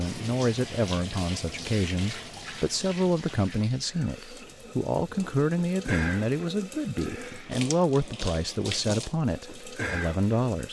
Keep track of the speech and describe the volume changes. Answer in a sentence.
The loudness of the speech stays about the same.